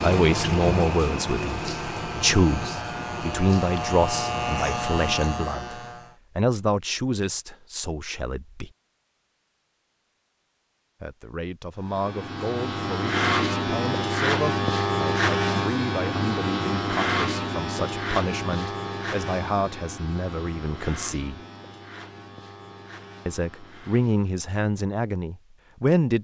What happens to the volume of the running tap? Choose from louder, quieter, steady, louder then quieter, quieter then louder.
quieter.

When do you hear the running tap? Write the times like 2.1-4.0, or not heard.
0.0-4.5.